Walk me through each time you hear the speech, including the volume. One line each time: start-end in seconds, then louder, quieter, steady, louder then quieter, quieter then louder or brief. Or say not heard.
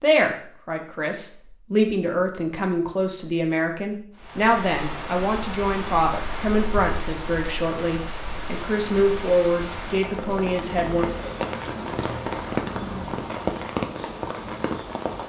0.0-11.1 steady.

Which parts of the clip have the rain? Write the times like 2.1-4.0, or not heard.
4.2-15.2.